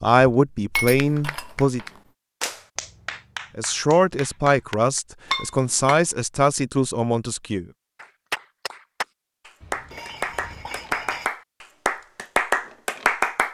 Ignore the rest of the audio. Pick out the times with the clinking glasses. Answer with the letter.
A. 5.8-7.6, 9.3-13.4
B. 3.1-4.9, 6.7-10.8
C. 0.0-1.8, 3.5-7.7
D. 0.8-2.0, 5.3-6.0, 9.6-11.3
D.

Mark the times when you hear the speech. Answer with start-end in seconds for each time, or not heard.
0.0-1.8, 3.5-7.7.